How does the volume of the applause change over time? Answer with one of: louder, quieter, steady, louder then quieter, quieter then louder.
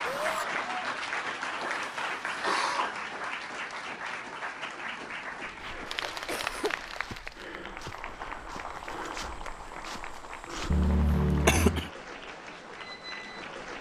quieter.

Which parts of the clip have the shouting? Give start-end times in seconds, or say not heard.
0.1-0.5.